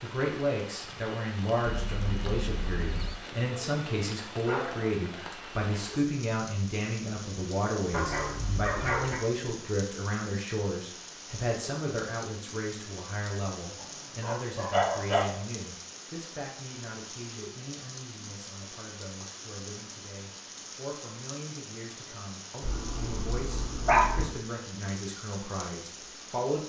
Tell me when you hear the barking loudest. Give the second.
24 s.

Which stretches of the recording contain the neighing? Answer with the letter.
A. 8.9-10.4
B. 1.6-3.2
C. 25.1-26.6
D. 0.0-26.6
B.